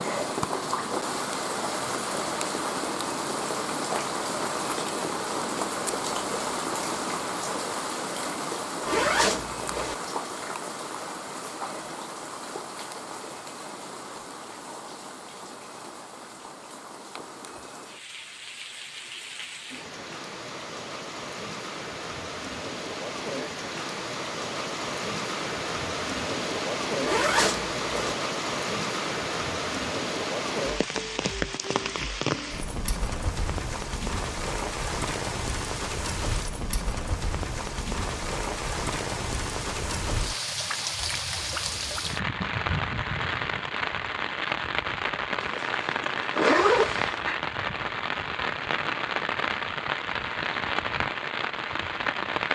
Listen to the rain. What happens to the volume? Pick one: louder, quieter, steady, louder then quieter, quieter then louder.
quieter then louder.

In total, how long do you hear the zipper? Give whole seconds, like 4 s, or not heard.
4 s.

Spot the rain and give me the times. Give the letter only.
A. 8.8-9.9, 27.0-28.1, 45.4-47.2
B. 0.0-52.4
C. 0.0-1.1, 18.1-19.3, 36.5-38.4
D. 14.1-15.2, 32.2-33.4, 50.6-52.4
B.